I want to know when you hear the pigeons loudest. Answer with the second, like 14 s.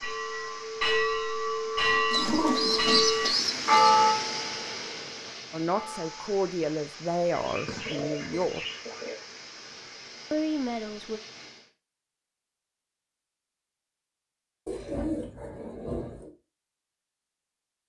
3 s.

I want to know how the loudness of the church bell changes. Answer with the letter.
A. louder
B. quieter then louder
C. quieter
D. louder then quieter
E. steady
D.